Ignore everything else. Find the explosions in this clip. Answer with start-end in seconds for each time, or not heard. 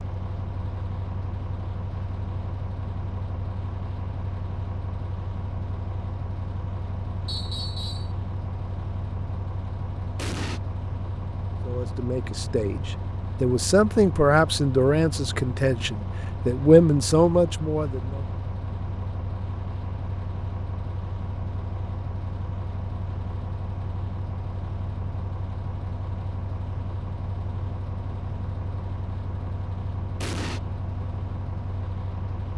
10.2-10.6, 30.2-30.6.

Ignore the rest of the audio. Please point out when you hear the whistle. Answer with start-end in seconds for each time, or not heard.
7.2-8.1.